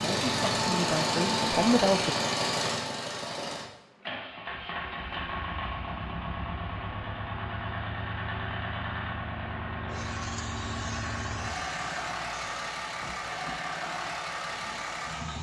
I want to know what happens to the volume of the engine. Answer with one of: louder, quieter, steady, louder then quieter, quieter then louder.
quieter.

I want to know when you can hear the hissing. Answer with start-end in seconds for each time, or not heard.
9.9-15.3.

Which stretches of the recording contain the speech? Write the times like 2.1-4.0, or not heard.
0.0-2.1.